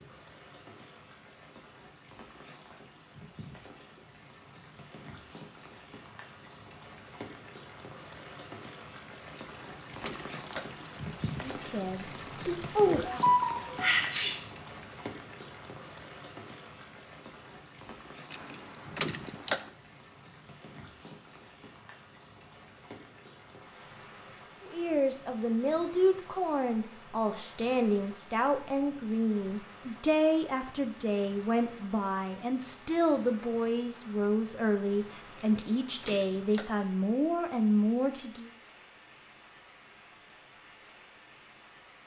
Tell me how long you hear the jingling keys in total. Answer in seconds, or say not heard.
4 s.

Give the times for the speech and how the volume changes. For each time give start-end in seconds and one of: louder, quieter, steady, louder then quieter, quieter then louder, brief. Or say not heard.
11.4-13.2 brief
24.6-38.5 steady.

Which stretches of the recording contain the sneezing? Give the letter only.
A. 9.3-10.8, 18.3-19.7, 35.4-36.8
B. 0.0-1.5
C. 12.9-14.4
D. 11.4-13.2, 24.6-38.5
C.